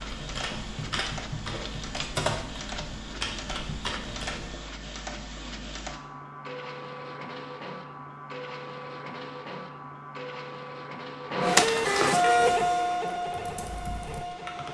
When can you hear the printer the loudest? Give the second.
12 s.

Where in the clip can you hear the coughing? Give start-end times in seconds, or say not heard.
not heard.